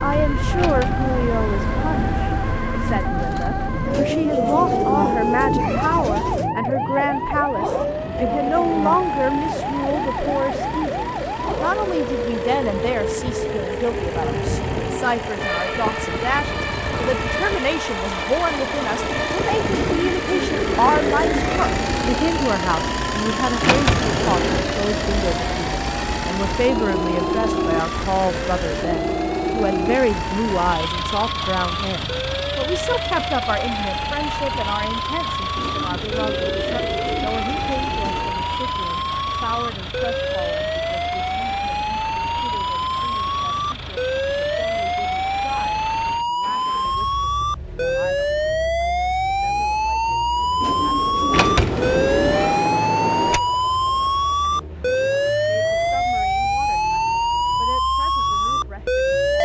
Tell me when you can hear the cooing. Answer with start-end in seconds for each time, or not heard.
3.9-6.5, 19.7-22.2, 35.5-38.4, 50.6-52.6.